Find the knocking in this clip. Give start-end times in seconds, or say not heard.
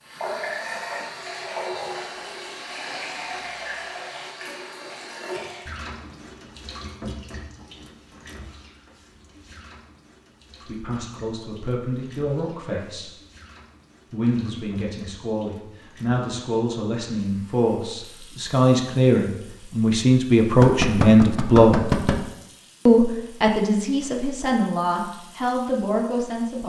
20.4-22.2.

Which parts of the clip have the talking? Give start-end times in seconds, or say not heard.
10.7-13.1, 14.1-21.8, 22.9-26.6.